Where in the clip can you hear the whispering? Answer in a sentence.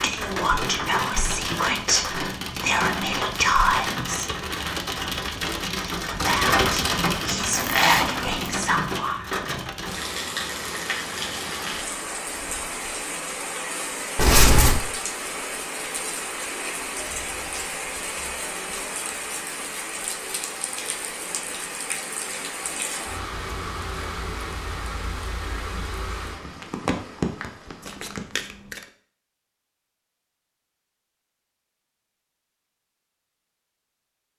You can hear the whispering from 0.0 to 4.3 s and from 5.8 to 9.2 s.